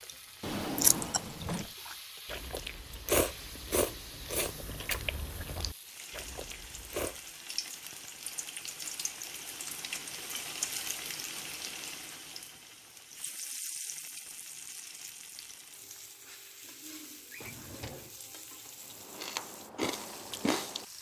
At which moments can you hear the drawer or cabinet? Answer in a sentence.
The drawer or cabinet can be heard from 0.4 to 1.8 s and from 17.3 to 18.1 s.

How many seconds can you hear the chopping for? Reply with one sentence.
You can't hear the chopping here.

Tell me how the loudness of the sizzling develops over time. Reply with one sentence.
The volume of the sizzling goes up, then down.